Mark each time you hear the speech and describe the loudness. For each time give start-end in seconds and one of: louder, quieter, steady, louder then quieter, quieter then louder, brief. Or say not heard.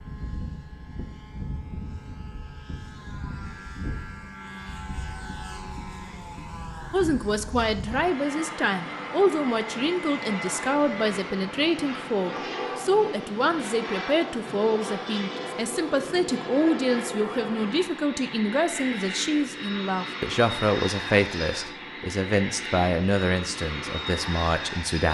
6.9-25.0 steady.